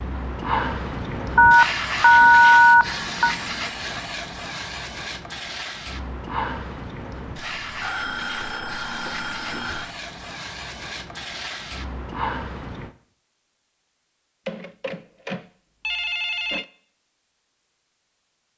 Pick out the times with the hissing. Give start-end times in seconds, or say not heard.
0.0-12.9.